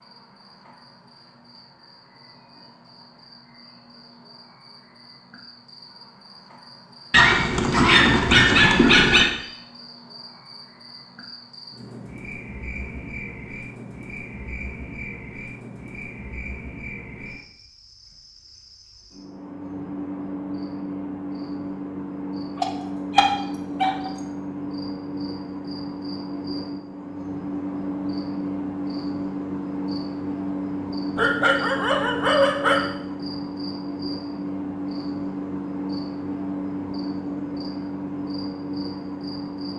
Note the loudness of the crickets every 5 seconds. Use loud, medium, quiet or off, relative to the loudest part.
quiet, quiet, medium, medium, loud, loud, loud, loud.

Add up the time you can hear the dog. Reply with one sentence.
You can hear the dog for 5 seconds altogether.